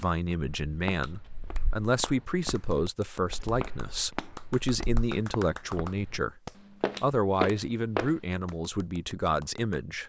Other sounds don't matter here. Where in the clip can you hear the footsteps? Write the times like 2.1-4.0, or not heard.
0.5-6.2, 6.8-8.6.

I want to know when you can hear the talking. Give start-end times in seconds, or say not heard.
0.0-6.4, 7.0-10.0.